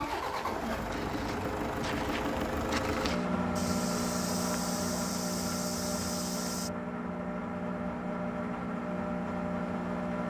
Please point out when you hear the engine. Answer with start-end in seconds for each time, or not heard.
0.0-10.2.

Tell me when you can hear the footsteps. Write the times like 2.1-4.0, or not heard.
0.0-6.7.